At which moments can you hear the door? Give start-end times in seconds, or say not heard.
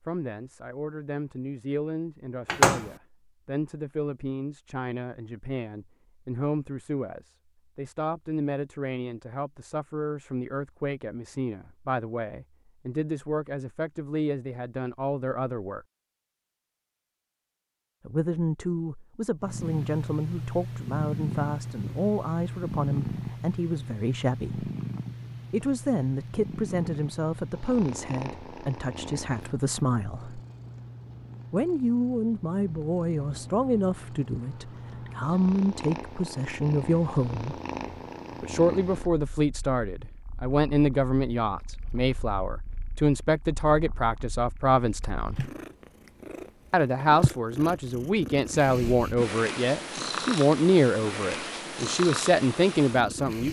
2.5-2.9.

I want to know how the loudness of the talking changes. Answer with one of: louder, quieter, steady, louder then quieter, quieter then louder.
louder.